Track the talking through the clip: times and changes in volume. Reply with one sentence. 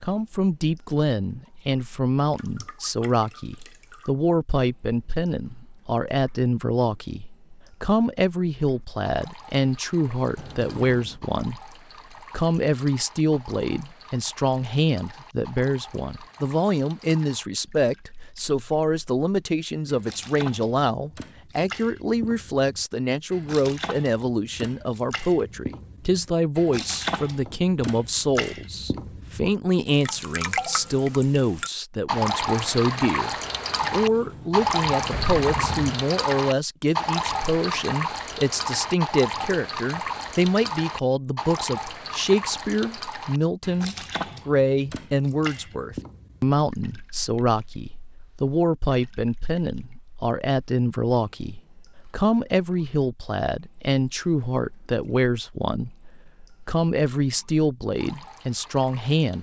The talking can be heard from 0.0 to 56.0 s, at a steady volume; and briefly from 56.6 to 59.3 s.